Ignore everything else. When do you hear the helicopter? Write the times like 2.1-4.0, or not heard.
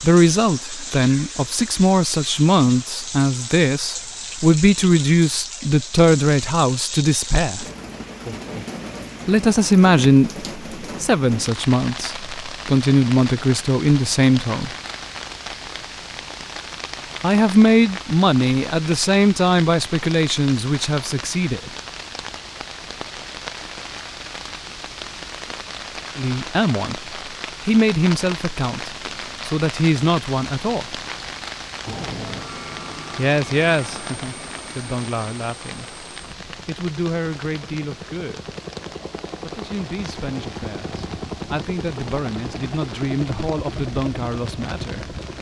31.9-45.3.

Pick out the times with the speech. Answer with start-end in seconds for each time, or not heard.
0.0-7.7, 9.2-14.7, 17.2-21.7, 26.1-30.9, 33.1-38.5, 39.4-45.3.